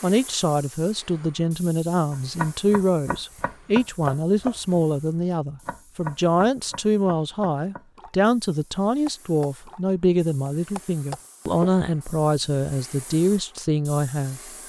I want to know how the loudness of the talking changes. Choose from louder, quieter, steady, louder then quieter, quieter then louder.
steady.